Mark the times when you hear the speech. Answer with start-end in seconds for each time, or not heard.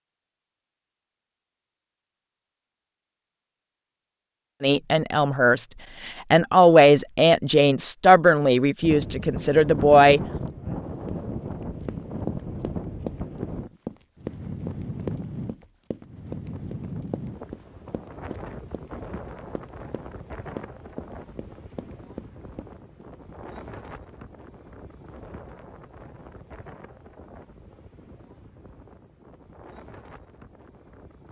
4.6-10.2.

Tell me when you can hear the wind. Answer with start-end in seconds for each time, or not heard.
8.8-31.2.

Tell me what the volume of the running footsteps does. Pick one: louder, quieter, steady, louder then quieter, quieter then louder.
quieter.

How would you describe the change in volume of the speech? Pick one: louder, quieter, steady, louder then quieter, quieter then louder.
louder then quieter.